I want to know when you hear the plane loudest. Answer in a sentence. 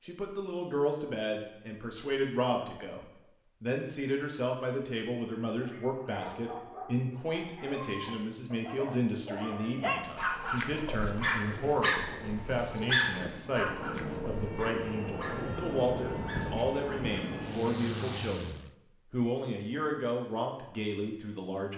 The loudest moment of the plane is at 16 seconds.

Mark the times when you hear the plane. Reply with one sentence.
You can hear the plane from 10.2 to 18.7 s.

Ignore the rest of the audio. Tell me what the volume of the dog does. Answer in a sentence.
The volume of the dog goes up, then down.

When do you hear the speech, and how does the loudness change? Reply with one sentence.
You can hear the speech from 0.0 to 21.7 s, at a steady volume.